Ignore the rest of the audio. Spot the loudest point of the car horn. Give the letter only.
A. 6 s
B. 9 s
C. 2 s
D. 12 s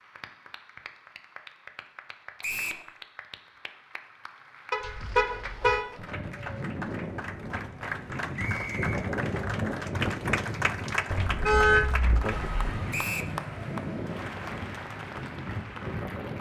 D.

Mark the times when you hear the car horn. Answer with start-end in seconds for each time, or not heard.
4.7-5.8, 11.1-12.8.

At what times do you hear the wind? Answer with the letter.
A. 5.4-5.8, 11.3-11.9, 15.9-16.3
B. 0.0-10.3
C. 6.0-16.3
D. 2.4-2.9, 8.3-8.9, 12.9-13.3
C.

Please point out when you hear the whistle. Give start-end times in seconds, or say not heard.
2.4-2.9, 8.3-8.9, 12.9-13.3.